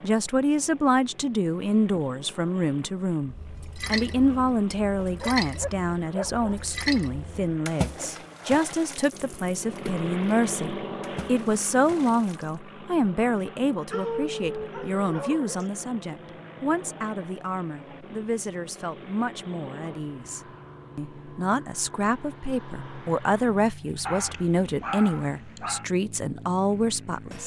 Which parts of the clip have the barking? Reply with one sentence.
The barking can be heard from 5.0 to 6.5 s, from 13.9 to 15.7 s and from 24.1 to 25.9 s.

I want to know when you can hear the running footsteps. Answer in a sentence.
You can't hear the running footsteps here.